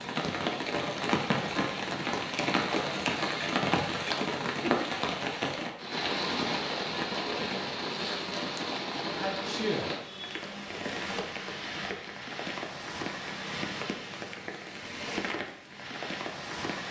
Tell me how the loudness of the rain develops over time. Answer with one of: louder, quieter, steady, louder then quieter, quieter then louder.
quieter.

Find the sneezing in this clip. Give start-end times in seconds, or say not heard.
9.2-9.9.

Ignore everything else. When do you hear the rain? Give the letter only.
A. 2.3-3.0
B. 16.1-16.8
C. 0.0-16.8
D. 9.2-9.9
C.